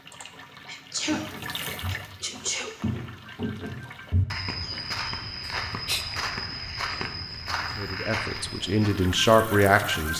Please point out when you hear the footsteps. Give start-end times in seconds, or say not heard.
1.1-9.1.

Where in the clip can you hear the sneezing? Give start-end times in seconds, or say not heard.
0.1-2.8, 5.4-6.0.